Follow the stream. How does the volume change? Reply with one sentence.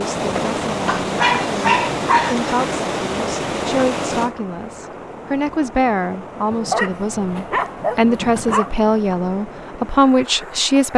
The loudness of the stream goes down.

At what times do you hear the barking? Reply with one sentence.
The barking can be heard from 0.8 to 2.5 s and from 6.5 to 8.7 s.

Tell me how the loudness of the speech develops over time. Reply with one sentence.
The volume of the speech goes up.